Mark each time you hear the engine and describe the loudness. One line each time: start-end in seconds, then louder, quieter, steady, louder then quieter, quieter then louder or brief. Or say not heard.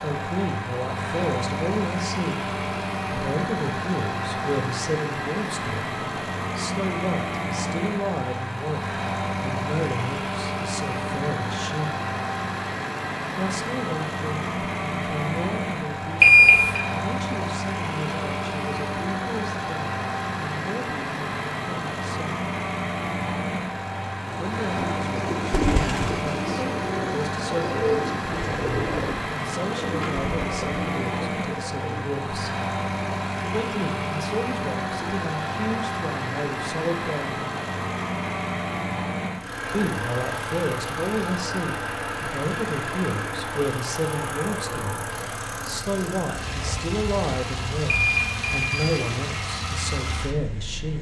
0.0-50.9 steady.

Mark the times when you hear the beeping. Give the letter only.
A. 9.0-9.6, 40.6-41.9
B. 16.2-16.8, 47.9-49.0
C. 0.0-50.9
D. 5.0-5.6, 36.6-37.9
B.